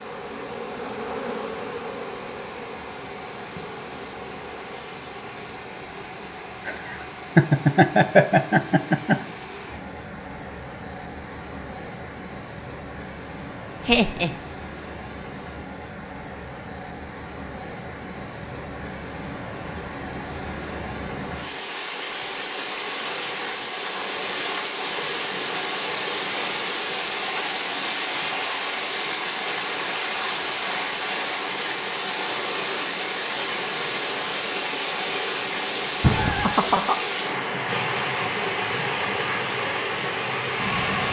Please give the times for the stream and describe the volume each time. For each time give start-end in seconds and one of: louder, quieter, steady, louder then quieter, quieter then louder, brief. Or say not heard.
0.0-41.0 louder.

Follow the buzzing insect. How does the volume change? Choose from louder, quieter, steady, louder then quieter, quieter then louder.
quieter.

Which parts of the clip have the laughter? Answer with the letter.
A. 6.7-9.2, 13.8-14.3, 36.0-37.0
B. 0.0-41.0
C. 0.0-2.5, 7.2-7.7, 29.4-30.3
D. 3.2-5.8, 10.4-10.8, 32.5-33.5
A.